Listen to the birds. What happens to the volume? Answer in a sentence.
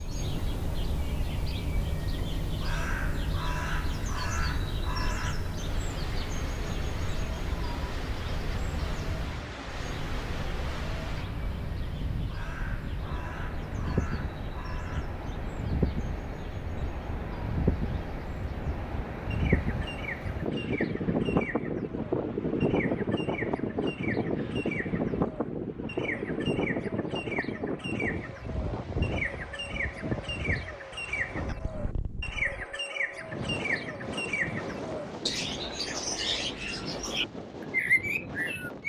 The loudness of the birds goes down, then up.